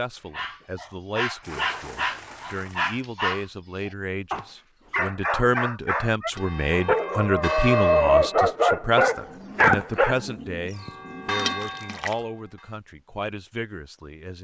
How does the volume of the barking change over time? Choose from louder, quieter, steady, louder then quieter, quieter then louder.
louder.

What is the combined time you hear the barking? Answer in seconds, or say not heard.
10 s.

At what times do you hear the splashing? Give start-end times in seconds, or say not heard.
1.4-3.0, 6.3-7.1, 11.3-12.2.